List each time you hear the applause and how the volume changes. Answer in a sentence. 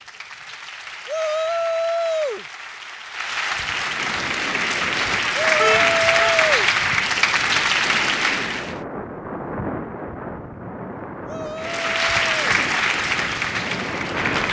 The applause can be heard from 0.0 to 8.8 s, getting louder; and briefly from 11.6 to 14.4 s.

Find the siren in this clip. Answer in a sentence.
You can't hear the siren here.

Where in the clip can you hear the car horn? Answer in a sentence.
The car horn can be heard from 5.5 to 6.3 s.